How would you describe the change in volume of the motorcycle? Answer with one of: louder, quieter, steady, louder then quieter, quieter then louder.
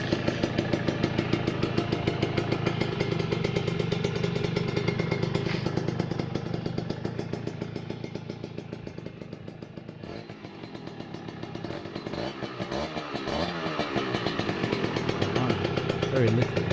quieter then louder.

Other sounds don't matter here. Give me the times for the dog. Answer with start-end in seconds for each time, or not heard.
not heard.